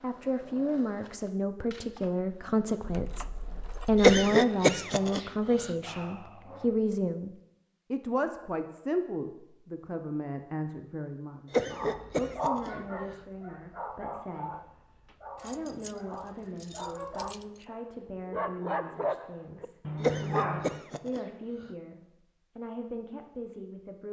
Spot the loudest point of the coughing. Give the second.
4 s.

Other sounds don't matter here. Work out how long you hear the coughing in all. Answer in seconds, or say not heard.
5 s.